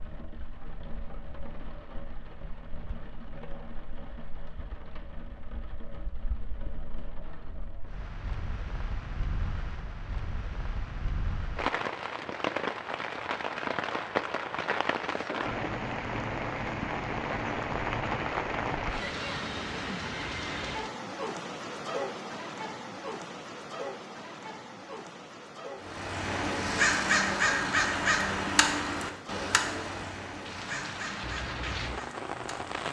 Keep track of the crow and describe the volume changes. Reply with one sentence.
The volume of the crow goes down.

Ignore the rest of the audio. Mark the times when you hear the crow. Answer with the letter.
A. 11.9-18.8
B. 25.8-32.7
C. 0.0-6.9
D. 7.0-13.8
B.